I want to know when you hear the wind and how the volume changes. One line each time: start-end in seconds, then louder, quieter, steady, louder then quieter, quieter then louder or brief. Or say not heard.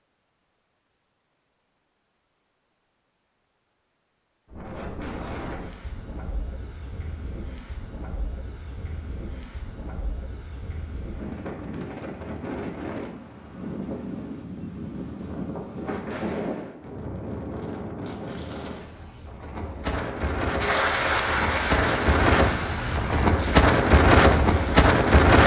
4.5-25.4 louder.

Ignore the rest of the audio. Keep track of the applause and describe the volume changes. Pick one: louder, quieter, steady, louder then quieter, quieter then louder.
quieter.